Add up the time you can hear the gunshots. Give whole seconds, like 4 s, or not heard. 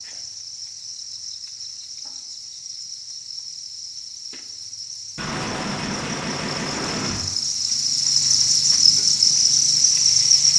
2 s.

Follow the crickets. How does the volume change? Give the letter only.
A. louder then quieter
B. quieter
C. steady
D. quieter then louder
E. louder
E.